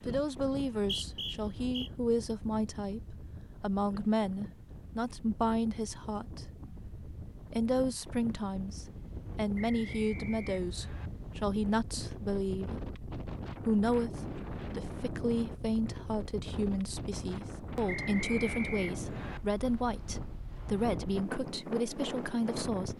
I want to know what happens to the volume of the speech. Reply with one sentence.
The volume of the speech stays about the same.